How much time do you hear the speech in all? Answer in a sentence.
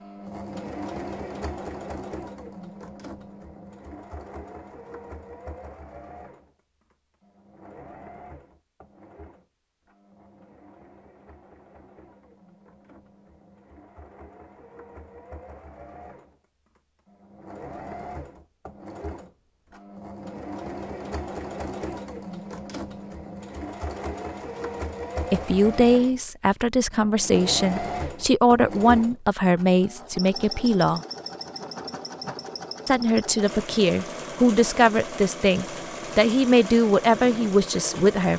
The speech can be heard for 11 seconds in total.